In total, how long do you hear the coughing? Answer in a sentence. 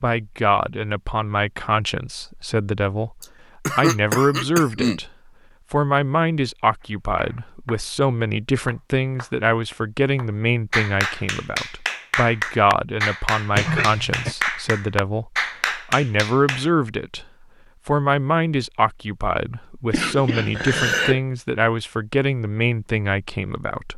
The coughing can be heard for 4 seconds in total.